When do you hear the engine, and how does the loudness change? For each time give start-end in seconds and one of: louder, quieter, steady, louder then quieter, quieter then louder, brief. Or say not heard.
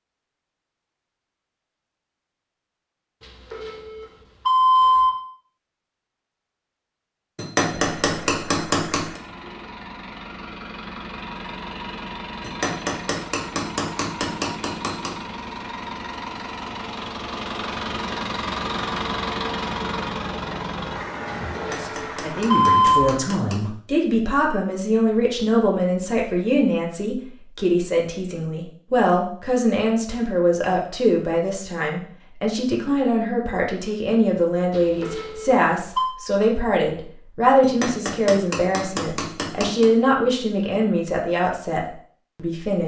7.6-23.1 louder.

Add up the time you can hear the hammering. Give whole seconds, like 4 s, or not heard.
9 s.